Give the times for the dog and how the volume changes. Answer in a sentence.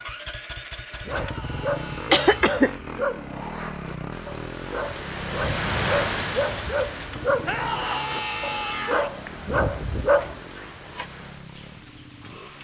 The dog can be heard from 0.9 to 10.4 s, getting quieter then louder.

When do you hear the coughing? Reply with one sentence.
You can hear the coughing from 2.1 to 2.8 s and from 10.3 to 11.1 s.